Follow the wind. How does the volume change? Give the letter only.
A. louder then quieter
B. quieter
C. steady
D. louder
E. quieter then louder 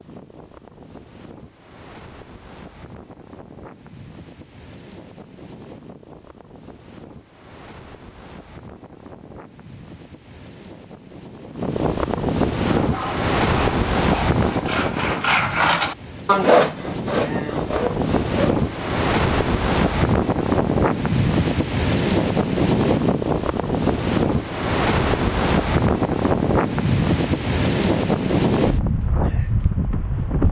D.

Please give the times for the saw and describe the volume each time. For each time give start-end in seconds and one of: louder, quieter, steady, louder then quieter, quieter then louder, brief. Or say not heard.
12.6-18.6 louder then quieter.